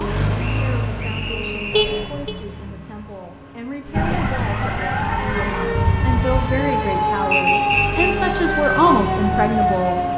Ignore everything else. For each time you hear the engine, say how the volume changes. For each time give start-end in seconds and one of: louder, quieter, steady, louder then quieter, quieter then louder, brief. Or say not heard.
0.0-10.1 quieter then louder.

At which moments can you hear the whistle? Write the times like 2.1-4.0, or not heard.
0.3-1.9, 7.3-8.2.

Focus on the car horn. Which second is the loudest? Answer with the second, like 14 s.
2 s.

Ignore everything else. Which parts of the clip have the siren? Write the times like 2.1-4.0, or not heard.
3.9-10.1.